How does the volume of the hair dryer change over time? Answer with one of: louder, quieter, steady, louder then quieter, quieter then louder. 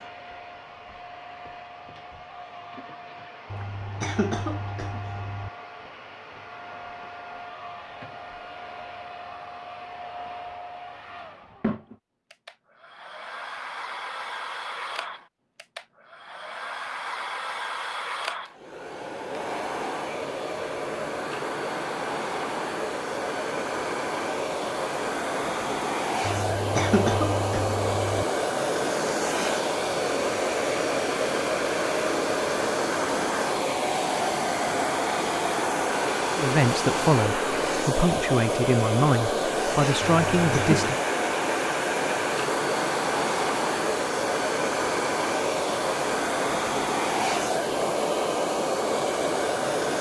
louder.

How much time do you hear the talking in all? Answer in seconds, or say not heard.
5 s.